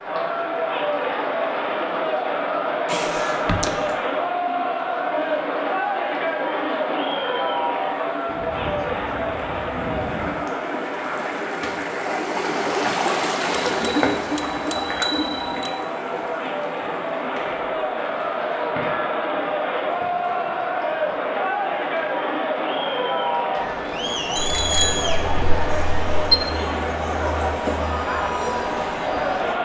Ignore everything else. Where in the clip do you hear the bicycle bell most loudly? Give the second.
26 s.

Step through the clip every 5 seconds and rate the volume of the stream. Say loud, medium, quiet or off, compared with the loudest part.
medium, medium, loud, medium, medium, medium.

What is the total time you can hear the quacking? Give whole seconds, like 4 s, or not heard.
2 s.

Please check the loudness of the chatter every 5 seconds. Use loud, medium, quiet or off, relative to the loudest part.
loud, loud, medium, loud, loud, loud.